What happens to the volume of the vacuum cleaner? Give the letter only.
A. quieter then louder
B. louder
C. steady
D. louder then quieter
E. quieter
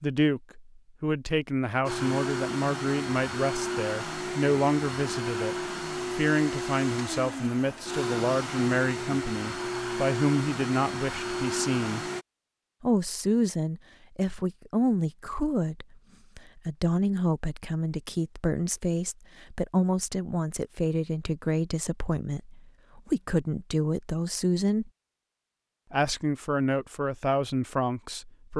C.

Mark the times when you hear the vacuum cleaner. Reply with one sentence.
The vacuum cleaner can be heard from 1.9 to 12.2 s.